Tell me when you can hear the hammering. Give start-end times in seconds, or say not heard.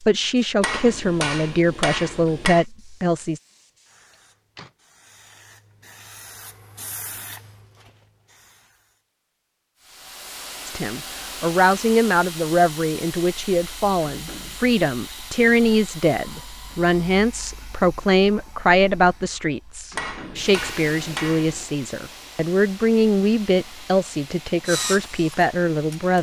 0.6-2.6, 19.9-21.6.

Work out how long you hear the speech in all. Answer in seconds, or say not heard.
19 s.